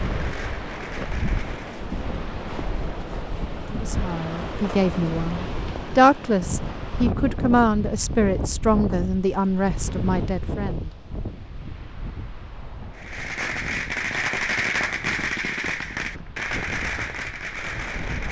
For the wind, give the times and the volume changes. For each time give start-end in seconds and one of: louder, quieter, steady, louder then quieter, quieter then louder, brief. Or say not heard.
0.0-18.2 quieter.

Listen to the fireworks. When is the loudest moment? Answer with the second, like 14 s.
15 s.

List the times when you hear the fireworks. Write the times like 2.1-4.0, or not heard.
0.0-1.9, 12.9-18.2.